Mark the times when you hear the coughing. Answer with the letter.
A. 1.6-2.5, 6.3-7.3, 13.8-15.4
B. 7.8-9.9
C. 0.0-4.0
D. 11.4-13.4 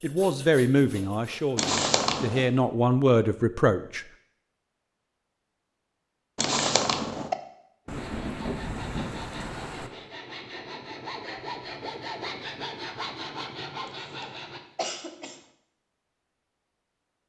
A.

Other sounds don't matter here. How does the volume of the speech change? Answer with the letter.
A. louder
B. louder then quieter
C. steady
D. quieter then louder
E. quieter
D.